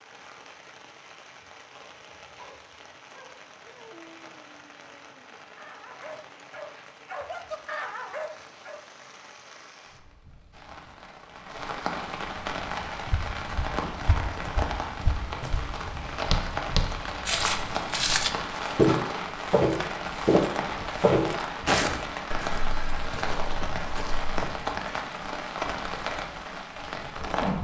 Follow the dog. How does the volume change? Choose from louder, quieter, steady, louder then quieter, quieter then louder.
louder.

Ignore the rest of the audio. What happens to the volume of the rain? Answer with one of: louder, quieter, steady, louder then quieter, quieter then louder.
louder.